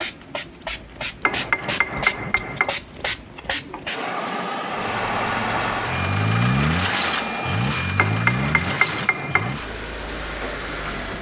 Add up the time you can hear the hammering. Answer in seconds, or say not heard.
3 s.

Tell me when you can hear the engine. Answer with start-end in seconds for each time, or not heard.
4.7-11.1.